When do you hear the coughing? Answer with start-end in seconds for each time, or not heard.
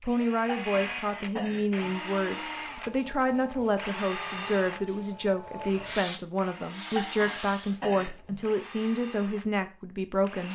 0.5-1.9, 7.0-8.4.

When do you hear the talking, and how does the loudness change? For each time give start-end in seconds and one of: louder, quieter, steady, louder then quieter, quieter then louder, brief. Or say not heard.
0.0-10.5 steady.